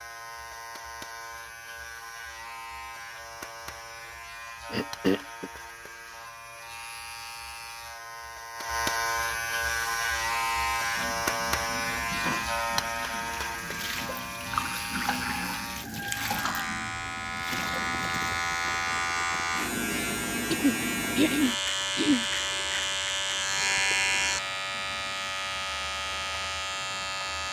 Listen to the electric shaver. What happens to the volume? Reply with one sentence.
The volume of the electric shaver goes up.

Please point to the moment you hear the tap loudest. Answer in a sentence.
The volume of the tap peaks at 15 seconds.